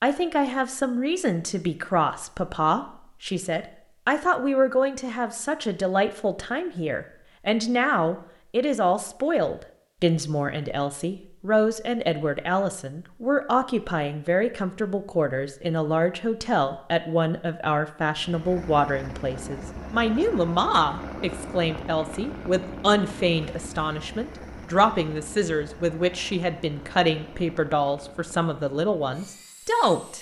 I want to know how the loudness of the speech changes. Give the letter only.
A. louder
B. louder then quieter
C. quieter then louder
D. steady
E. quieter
D.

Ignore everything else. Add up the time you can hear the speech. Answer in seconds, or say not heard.
30 s.